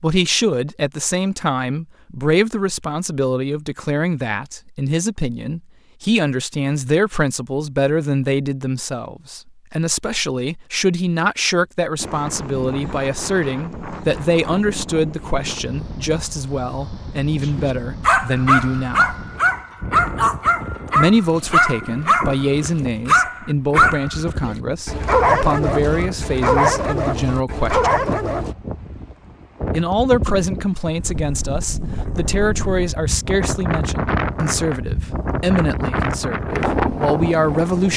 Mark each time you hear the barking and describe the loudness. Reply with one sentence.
The barking can be heard from 17.4 to 28.6 s, at a steady volume.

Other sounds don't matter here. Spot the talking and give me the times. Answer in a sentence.
The talking can be heard from 0.0 to 19.1 s, from 20.9 to 27.9 s and from 29.7 to 37.9 s.